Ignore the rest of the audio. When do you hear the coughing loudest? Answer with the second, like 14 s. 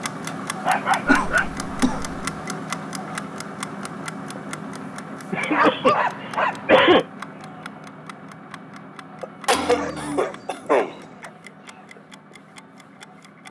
7 s.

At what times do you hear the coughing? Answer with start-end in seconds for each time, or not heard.
1.1-2.1, 5.3-7.0, 9.2-10.9.